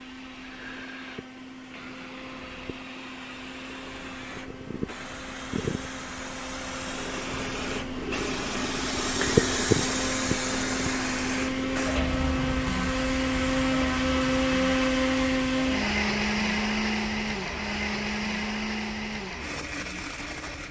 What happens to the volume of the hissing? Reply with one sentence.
The loudness of the hissing goes up, then down.